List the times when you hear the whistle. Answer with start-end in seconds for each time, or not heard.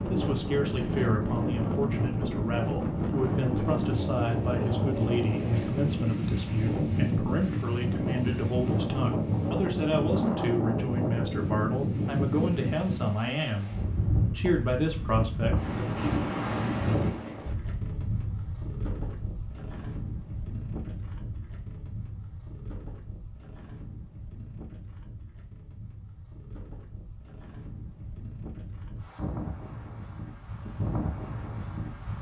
not heard.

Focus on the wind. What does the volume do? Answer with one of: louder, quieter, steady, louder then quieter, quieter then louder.
quieter.